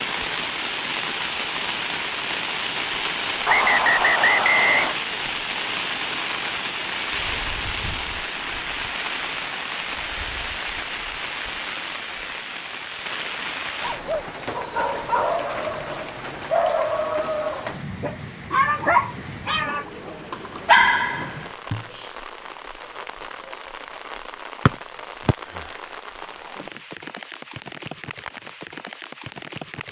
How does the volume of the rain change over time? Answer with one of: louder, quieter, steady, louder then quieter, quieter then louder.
quieter.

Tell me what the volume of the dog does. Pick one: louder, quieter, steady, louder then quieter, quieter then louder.
louder.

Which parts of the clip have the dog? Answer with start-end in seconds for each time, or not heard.
13.8-22.1.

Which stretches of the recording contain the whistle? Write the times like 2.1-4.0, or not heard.
3.5-5.0, 24.6-25.4.